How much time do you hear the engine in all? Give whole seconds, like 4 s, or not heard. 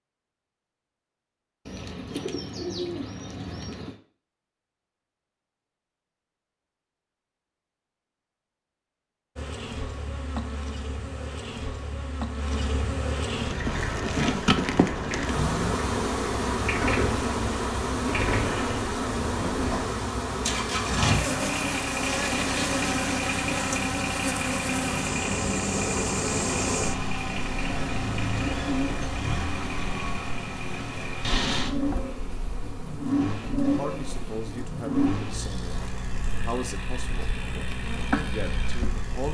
26 s.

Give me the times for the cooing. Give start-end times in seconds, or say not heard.
1.6-4.0, 27.6-29.1.